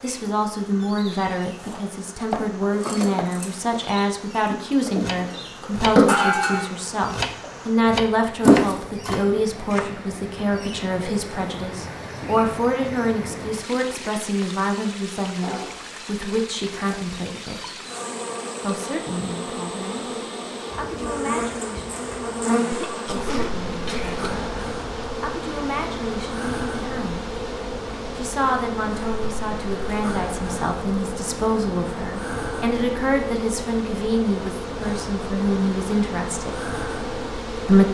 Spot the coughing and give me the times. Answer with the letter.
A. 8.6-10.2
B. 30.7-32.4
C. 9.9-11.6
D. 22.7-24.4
D.